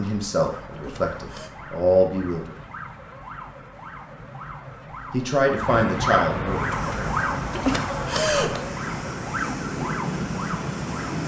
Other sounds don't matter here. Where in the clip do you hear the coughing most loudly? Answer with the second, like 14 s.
8 s.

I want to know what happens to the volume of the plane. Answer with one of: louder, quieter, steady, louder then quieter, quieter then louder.
louder.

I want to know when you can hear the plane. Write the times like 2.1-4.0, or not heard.
6.5-11.2.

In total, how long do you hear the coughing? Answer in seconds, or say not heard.
2 s.